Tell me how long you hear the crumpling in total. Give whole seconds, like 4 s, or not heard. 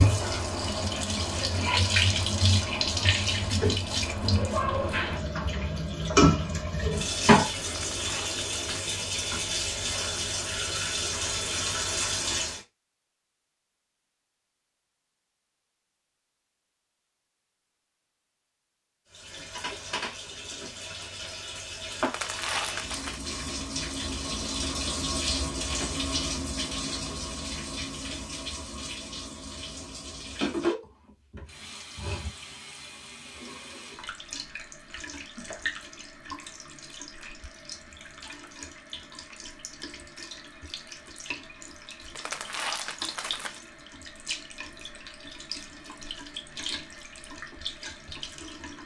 4 s.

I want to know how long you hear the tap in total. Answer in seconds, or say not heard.
42 s.